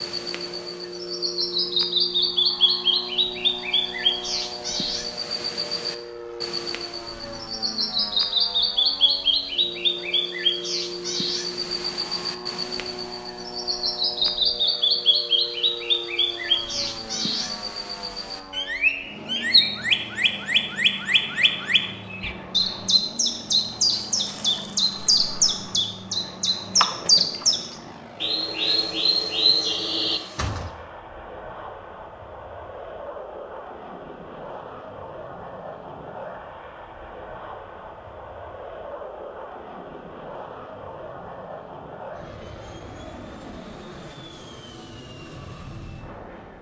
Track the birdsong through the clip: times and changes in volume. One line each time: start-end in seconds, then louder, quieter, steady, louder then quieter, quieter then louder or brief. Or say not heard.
0.0-30.7 steady.